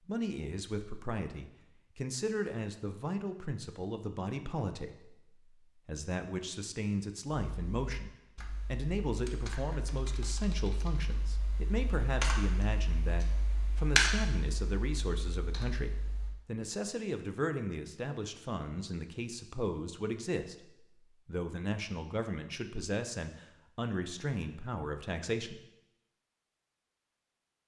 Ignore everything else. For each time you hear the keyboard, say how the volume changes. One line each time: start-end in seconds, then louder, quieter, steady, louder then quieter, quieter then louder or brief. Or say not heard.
7.5-16.4 louder then quieter.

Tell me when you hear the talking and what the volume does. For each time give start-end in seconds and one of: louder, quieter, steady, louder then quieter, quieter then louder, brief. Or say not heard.
0.1-25.6 steady.